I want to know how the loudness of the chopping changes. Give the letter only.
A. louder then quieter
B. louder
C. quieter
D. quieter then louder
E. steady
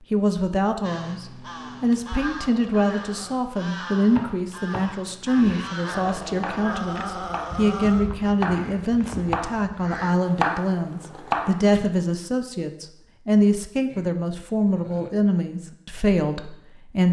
B.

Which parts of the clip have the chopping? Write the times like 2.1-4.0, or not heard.
4.1-11.9.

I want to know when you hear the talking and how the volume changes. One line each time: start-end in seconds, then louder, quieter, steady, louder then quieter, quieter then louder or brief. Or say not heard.
0.1-17.0 steady.